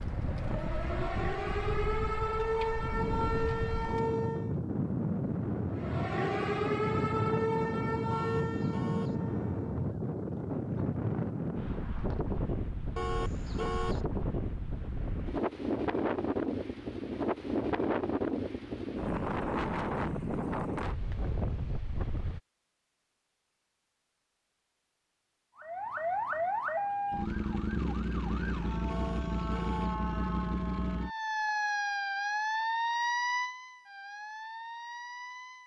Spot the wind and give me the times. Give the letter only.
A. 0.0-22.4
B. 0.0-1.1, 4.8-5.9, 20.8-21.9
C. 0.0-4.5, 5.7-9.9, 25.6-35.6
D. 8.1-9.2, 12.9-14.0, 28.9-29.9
A.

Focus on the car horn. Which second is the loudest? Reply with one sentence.
The loudest moment of the car horn is at 14 seconds.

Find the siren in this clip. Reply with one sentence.
You can hear the siren from 0.0 to 4.5 s, from 5.7 to 9.9 s and from 25.6 to 35.6 s.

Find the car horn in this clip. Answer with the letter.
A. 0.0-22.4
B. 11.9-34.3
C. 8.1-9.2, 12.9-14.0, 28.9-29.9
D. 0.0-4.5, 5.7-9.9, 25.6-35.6
C.